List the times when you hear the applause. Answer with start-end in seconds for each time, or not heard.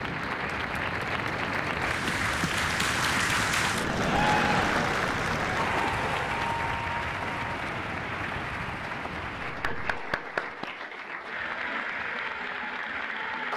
0.0-13.5.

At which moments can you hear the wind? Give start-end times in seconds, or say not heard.
0.0-10.6.